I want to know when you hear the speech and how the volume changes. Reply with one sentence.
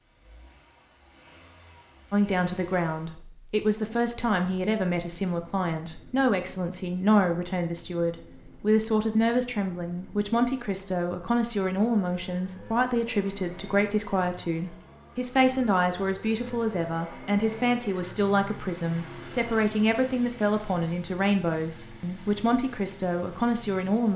The speech can be heard from 2.1 to 24.1 s, at a steady volume.